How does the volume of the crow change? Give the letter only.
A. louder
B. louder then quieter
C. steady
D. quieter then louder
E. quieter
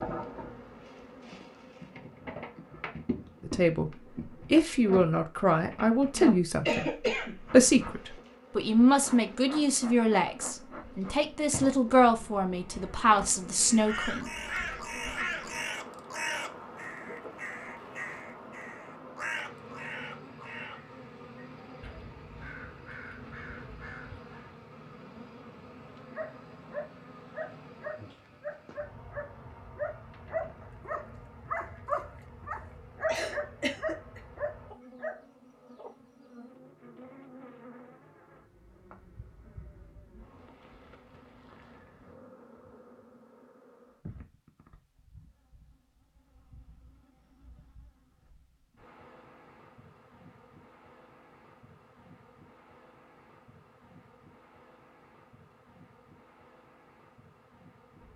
E.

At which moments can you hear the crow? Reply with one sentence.
The crow can be heard from 13.7 to 24.6 s.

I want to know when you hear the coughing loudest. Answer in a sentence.
The loudest moment of the coughing is at 7 seconds.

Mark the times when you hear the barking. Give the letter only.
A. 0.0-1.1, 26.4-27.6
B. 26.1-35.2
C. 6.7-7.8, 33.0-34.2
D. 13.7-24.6
B.